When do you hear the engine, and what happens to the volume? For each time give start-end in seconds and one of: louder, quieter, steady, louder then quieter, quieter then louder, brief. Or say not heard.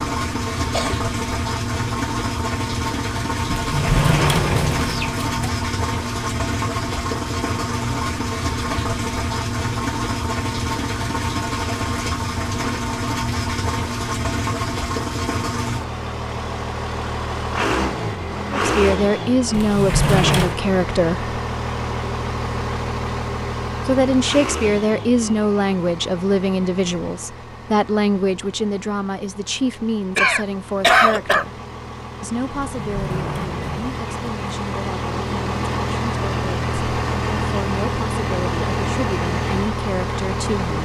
0.0-40.8 quieter then louder.